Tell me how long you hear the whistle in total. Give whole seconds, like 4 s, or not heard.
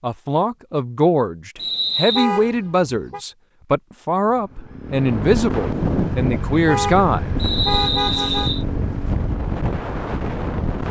2 s.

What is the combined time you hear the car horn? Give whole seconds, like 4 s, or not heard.
3 s.